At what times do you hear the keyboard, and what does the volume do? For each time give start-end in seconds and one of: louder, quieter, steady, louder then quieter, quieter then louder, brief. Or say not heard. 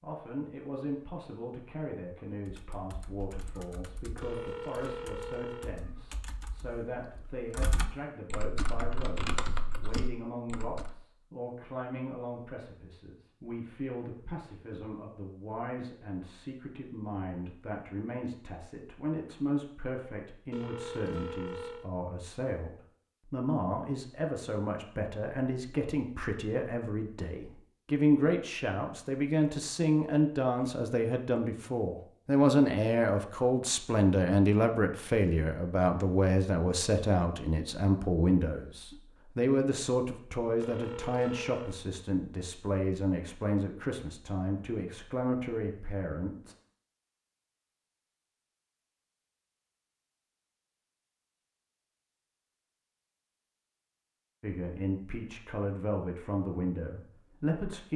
2.5-10.9 louder.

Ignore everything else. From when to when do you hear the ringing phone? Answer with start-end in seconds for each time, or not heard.
4.2-5.8, 20.5-21.9, 40.6-41.8.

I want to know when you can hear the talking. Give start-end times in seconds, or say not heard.
0.0-46.5, 54.4-57.9.